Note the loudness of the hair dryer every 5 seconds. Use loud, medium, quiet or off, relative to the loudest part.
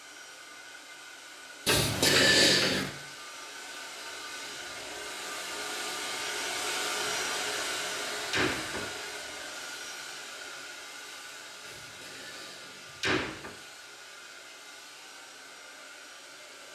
medium, loud, medium, quiet.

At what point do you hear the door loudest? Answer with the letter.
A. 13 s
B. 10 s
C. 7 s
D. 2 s
D.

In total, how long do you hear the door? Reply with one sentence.
The door can be heard for 5 seconds in total.